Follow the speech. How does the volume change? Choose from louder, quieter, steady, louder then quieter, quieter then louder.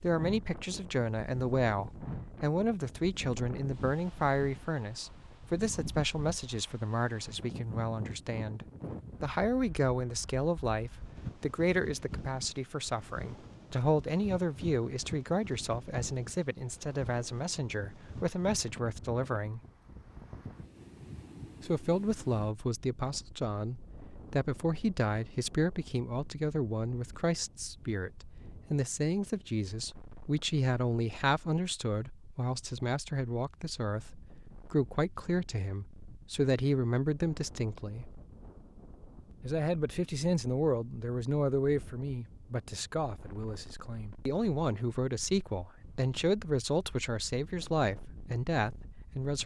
steady.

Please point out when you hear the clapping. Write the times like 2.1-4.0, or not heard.
not heard.